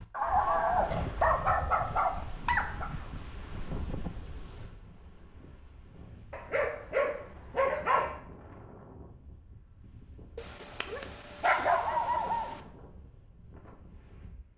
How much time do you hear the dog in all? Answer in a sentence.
The dog can be heard for 7 seconds in total.